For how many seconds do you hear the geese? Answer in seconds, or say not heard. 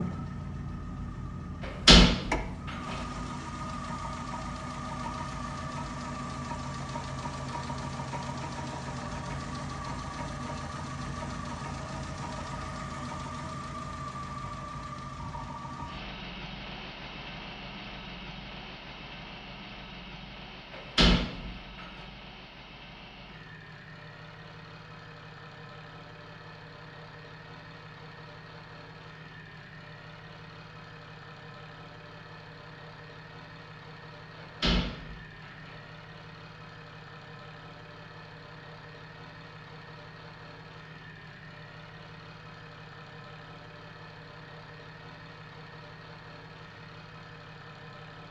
not heard.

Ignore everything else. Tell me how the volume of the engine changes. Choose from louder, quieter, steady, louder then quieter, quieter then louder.
quieter.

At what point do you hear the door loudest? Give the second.
2 s.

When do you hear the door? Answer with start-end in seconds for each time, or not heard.
1.6-3.0, 20.8-21.6, 34.6-35.7.